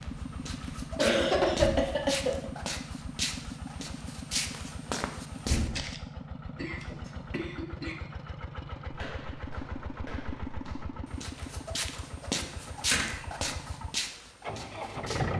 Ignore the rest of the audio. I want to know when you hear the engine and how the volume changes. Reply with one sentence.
The engine can be heard from 0.0 to 15.3 s, at a steady volume.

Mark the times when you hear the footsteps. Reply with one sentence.
You can hear the footsteps from 0.0 to 6.0 s and from 8.9 to 15.2 s.